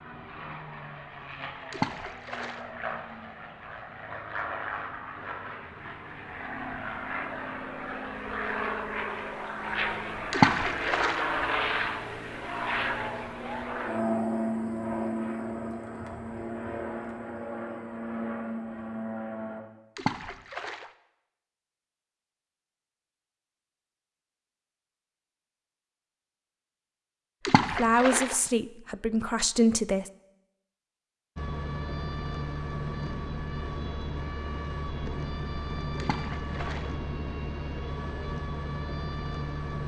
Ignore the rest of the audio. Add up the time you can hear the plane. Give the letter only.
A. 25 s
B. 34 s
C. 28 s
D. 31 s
C.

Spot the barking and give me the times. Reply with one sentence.
You can't hear the barking here.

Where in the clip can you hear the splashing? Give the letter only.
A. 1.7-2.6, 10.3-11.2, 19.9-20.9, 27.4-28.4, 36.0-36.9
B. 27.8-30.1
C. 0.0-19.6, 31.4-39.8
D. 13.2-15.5
A.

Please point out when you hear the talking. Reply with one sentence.
You can hear the talking from 27.8 to 30.1 s.